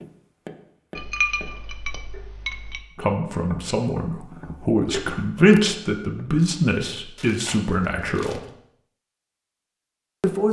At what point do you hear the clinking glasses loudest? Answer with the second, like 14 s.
1 s.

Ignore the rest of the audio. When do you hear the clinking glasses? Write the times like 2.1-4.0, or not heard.
0.9-2.9.